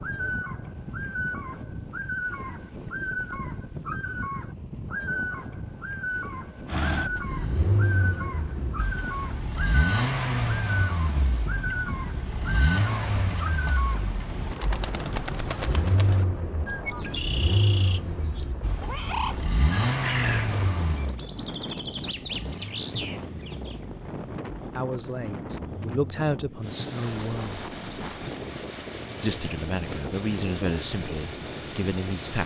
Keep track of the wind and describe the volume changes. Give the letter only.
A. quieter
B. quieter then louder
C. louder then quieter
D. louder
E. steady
E.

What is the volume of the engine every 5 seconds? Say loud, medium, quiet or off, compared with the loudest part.
off, loud, loud, loud, loud, medium, medium.